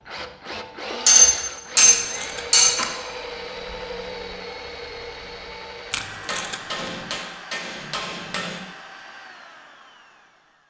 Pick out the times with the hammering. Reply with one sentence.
The hammering can be heard from 1.1 to 2.9 s and from 6.2 to 8.6 s.